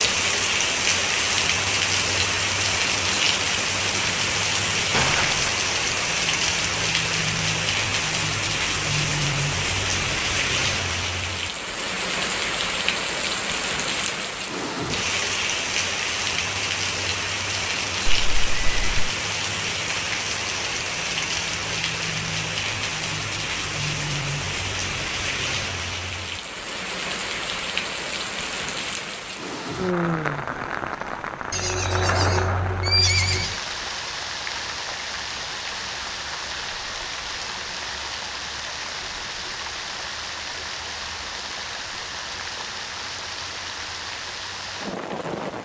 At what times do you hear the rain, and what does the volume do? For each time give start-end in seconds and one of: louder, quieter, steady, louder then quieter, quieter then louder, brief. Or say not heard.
0.0-45.6 quieter.